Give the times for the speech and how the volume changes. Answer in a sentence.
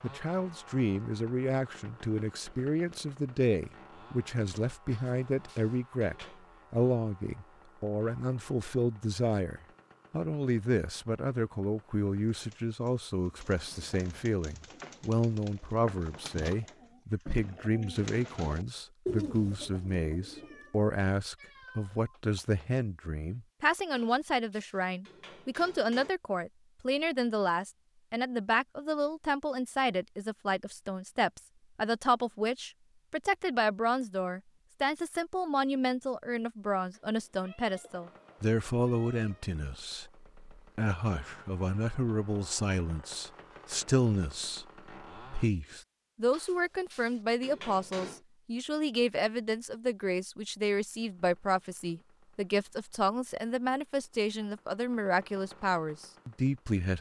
The speech can be heard from 0.0 to 56.9 s, at a steady volume.